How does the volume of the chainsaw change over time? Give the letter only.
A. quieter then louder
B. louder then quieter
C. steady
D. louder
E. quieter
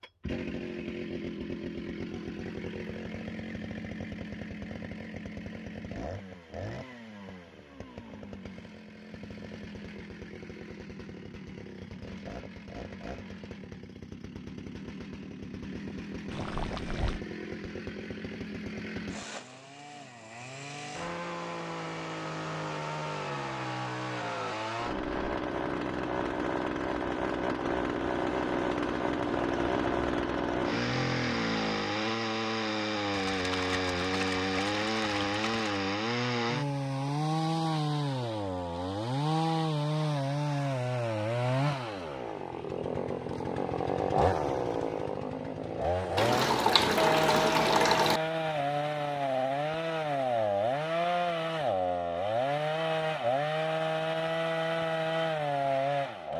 D.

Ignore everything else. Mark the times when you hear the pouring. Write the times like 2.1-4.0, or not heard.
16.3-17.2, 33.1-35.7, 46.1-48.2.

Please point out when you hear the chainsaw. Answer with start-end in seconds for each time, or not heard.
0.0-56.3.